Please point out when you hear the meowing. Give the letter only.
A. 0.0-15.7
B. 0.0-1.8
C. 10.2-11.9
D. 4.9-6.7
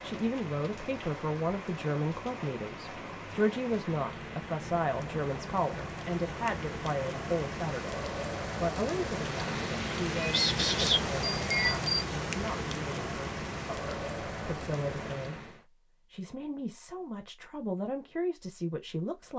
C.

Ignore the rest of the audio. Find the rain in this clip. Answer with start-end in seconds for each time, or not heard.
0.0-15.7.